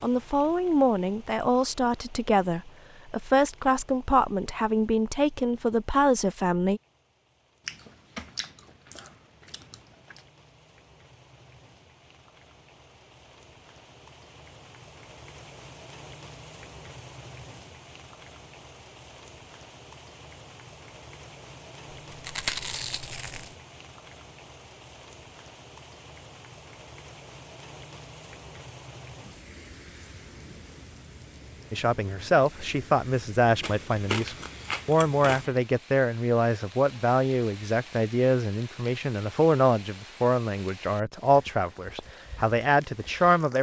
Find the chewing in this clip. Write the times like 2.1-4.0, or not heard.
7.7-10.2, 21.9-23.6, 33.6-35.5.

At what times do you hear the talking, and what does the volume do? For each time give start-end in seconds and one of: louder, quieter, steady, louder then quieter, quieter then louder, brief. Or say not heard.
0.0-6.8 steady
31.7-43.5 steady.